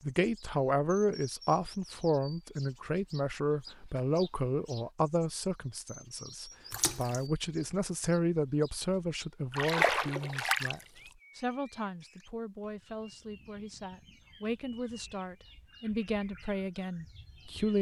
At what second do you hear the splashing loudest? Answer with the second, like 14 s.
10 s.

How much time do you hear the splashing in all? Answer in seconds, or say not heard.
2 s.